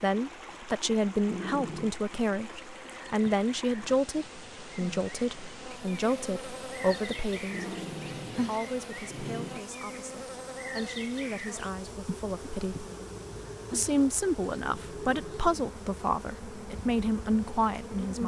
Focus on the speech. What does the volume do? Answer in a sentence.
The loudness of the speech goes down, then up.